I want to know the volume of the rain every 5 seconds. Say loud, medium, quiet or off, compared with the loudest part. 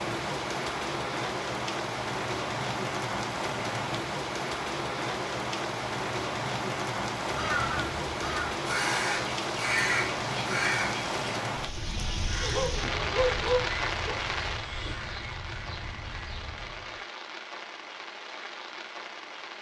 loud, loud, loud, medium.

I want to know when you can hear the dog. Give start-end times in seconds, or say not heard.
12.4-14.2.